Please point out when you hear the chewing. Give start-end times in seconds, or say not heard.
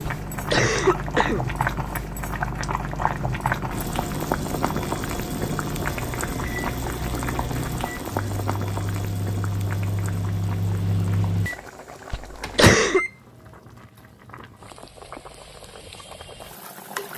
not heard.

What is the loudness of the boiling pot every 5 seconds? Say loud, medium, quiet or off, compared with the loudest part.
loud, loud, quiet, medium.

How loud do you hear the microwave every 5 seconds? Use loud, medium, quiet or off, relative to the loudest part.
medium, medium, loud, off.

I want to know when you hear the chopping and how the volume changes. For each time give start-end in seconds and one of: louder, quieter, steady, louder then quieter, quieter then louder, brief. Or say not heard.
not heard.